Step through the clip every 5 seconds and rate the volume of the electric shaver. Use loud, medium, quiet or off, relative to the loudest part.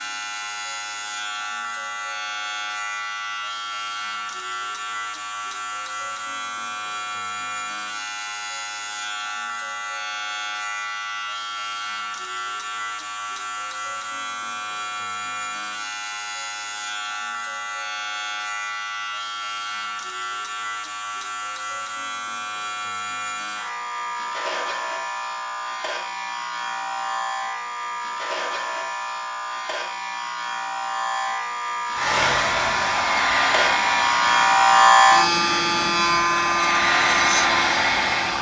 medium, medium, medium, medium, medium, medium, loud, loud.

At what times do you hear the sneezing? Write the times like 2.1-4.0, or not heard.
not heard.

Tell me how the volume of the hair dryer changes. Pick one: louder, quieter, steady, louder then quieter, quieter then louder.
quieter then louder.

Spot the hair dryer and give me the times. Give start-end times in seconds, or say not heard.
31.9-38.3.